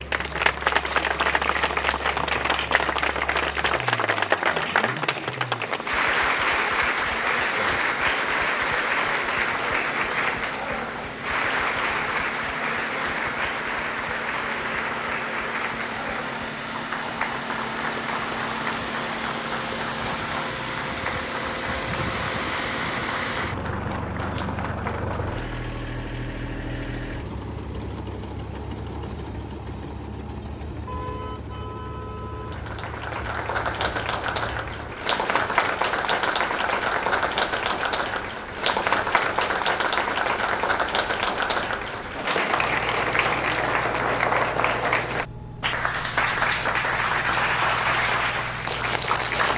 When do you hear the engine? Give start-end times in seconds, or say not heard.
0.0-49.5.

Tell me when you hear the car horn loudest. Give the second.
31 s.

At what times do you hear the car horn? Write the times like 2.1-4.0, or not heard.
30.9-32.6.